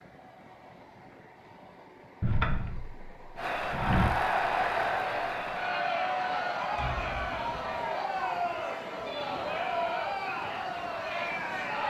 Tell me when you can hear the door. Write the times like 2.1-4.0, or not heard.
2.2-4.1, 6.8-7.6.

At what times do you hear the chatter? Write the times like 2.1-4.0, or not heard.
3.4-11.8.